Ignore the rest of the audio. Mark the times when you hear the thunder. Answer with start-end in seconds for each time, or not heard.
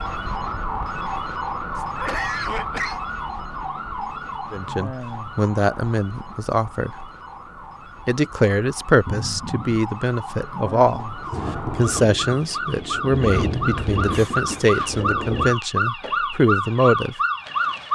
10.9-15.6.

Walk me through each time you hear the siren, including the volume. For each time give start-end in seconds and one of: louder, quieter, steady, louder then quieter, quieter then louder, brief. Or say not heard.
0.0-17.8 quieter then louder.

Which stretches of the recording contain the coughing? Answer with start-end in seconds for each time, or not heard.
1.8-3.0, 9.1-9.7, 14.1-14.7.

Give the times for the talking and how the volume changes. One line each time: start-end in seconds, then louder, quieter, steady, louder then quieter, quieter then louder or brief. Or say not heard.
4.5-7.0 brief
8.1-17.1 steady.